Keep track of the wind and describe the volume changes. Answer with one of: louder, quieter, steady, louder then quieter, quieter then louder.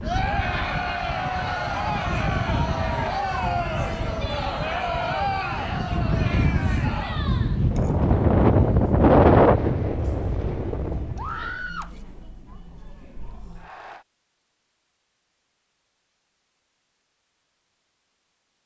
louder.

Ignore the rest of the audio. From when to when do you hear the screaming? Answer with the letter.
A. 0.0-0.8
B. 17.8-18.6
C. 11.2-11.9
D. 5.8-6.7
C.